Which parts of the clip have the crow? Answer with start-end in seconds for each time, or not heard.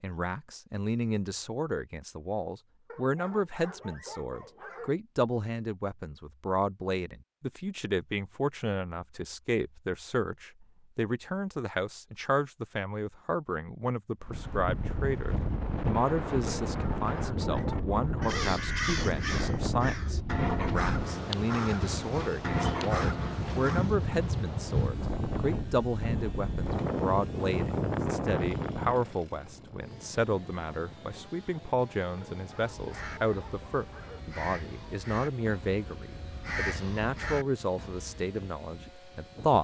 18.2-23.9, 32.6-38.2.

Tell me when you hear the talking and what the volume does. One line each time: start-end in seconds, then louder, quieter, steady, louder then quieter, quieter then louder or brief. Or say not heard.
0.0-39.6 steady.